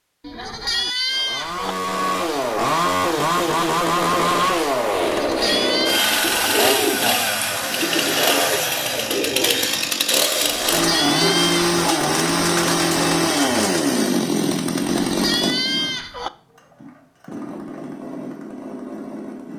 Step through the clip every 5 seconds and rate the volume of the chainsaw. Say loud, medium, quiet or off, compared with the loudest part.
loud, loud, loud, medium.